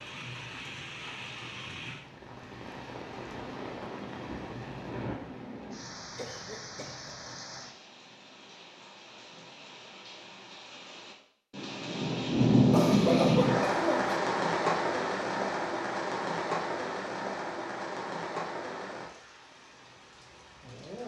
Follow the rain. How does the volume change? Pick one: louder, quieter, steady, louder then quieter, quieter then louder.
louder then quieter.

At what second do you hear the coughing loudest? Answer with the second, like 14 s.
13 s.